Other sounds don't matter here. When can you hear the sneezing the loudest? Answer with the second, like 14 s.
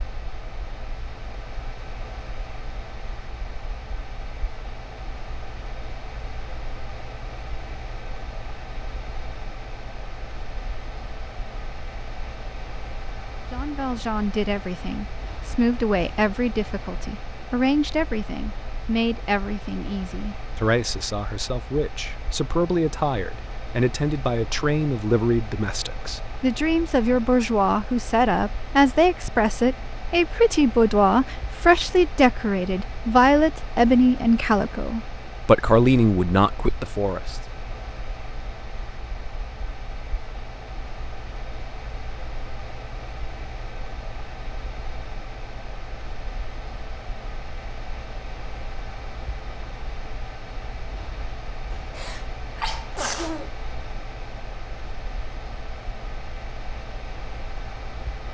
53 s.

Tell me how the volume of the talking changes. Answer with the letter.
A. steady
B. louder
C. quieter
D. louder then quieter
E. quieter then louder
B.